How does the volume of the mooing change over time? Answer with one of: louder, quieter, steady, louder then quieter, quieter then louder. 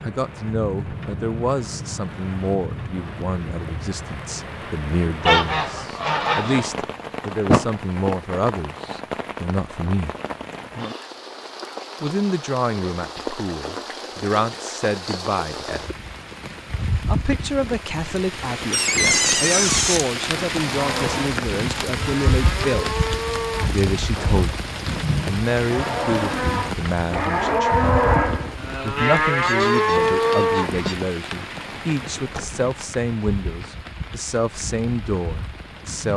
louder.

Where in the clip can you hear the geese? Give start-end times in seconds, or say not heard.
5.2-6.8, 29.4-30.9.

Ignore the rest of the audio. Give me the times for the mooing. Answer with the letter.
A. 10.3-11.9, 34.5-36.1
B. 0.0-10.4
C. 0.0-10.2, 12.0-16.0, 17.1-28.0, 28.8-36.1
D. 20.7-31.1
D.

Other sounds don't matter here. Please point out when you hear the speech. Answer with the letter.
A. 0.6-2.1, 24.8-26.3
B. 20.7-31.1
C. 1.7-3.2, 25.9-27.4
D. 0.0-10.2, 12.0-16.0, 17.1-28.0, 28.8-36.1
D.